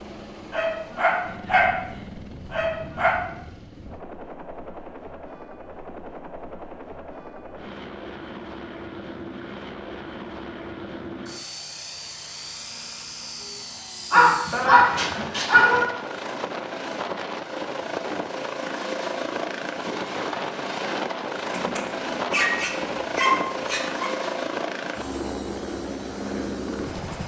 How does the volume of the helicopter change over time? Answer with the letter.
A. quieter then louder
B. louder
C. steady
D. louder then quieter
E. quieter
B.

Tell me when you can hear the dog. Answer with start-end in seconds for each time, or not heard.
0.5-1.8, 2.5-3.2, 14.1-15.8, 21.5-24.1.